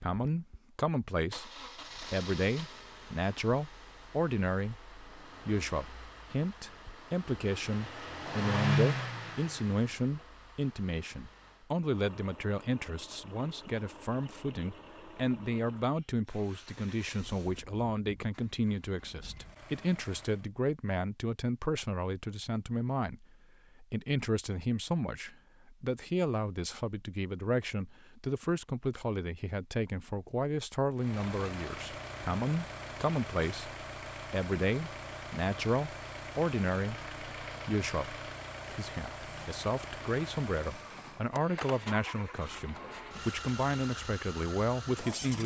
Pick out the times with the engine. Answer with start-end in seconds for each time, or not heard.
0.1-20.5, 30.9-45.4.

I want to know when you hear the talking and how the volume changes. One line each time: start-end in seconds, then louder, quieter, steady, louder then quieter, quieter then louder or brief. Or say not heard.
0.0-1.5 brief
2.1-45.4 steady.